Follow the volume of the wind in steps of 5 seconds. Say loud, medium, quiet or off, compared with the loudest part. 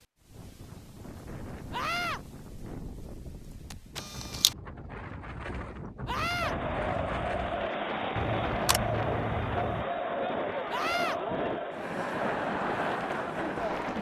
medium, loud, loud.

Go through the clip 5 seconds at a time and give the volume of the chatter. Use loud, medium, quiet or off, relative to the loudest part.
off, loud, loud.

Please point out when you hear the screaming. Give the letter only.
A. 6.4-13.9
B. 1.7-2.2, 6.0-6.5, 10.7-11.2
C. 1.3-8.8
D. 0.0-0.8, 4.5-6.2
B.